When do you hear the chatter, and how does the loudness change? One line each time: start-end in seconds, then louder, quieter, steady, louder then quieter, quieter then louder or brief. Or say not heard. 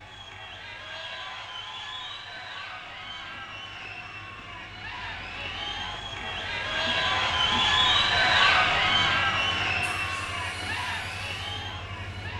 0.0-12.3 louder then quieter.